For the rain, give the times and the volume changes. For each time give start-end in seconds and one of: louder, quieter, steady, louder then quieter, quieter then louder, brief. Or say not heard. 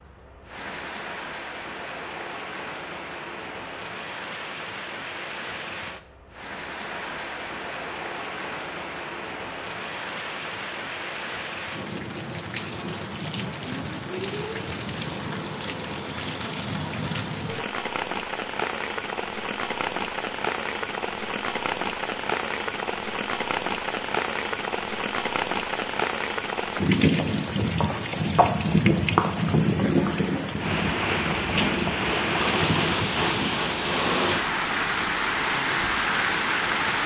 0.0-37.0 louder.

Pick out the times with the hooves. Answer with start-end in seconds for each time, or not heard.
26.8-33.5.